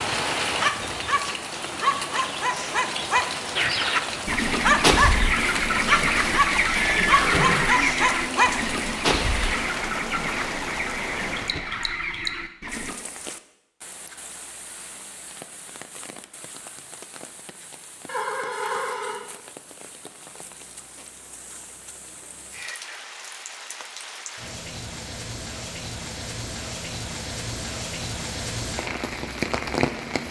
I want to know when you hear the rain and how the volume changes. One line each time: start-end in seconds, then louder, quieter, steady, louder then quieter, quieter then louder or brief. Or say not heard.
0.0-30.2 quieter then louder.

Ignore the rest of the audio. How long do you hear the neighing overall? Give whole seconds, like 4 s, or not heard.
3 s.